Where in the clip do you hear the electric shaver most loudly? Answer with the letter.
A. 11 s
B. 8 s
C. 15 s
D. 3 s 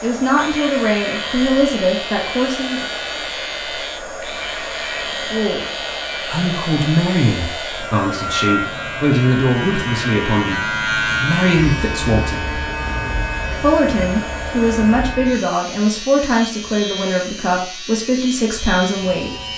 A.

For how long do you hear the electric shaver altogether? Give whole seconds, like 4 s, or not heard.
19 s.